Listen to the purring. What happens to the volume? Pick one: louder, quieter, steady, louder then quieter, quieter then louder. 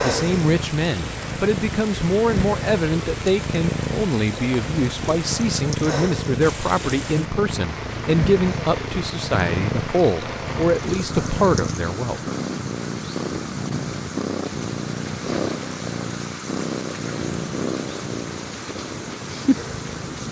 steady.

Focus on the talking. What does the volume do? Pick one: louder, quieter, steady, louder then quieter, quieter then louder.
steady.